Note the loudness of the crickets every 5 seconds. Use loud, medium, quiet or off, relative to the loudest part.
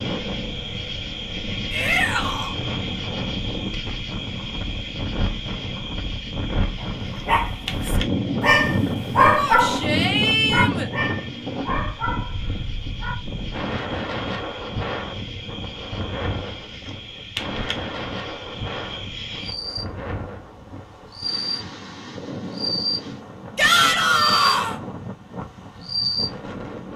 loud, medium, medium, medium, loud, loud.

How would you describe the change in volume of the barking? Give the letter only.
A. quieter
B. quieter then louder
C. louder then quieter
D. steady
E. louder
C.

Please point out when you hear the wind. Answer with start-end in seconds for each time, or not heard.
0.0-26.9.